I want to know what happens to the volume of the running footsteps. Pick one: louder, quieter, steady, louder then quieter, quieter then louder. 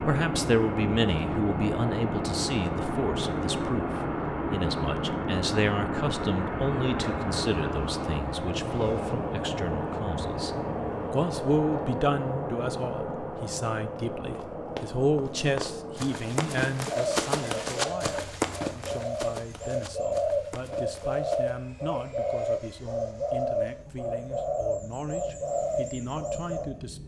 louder then quieter.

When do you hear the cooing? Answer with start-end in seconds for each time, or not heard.
16.9-26.6.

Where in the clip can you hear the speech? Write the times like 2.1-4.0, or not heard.
0.0-27.0.